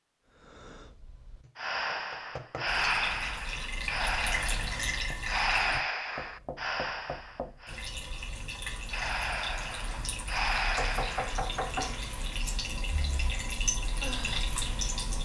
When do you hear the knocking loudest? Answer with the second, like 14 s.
12 s.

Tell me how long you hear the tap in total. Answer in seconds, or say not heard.
11 s.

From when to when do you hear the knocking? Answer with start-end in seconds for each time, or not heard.
1.4-2.6, 6.2-7.7, 10.8-12.0.